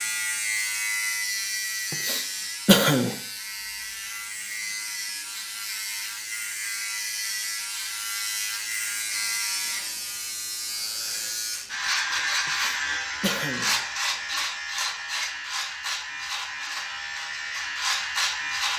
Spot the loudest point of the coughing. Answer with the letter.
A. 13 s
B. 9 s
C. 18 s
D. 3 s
D.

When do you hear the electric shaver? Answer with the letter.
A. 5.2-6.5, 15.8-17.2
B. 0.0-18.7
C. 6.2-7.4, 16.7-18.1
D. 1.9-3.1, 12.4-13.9
B.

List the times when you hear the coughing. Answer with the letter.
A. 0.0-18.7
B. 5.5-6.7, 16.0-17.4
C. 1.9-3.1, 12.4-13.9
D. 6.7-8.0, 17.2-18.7
C.